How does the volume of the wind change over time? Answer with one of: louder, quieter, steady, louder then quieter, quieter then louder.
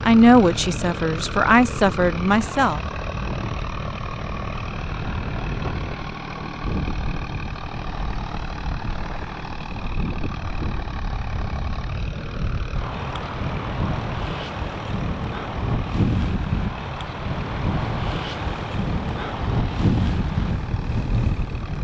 louder.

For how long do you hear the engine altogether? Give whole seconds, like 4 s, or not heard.
22 s.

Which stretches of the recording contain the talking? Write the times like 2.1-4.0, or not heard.
0.0-2.8.